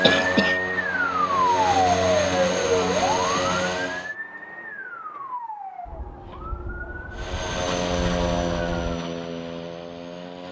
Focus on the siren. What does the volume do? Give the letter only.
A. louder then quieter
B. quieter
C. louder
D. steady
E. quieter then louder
B.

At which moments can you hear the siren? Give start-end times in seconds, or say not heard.
0.1-9.0.